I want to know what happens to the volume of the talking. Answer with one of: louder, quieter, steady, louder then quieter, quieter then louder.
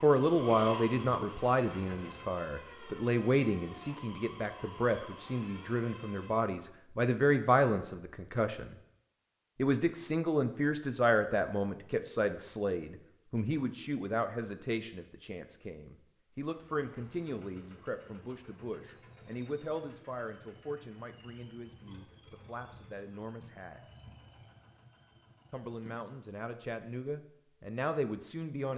quieter.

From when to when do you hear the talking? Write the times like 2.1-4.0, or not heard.
0.0-8.8, 9.6-23.8, 25.5-28.7.